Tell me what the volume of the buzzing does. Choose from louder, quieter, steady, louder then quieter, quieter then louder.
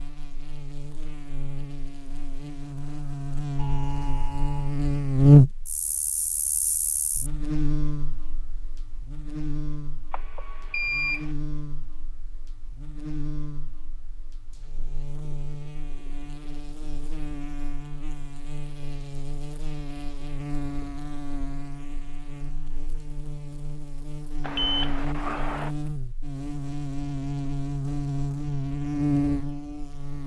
quieter then louder.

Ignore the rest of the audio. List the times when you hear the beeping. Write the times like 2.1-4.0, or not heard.
3.5-4.8, 10.1-11.2, 24.4-25.7.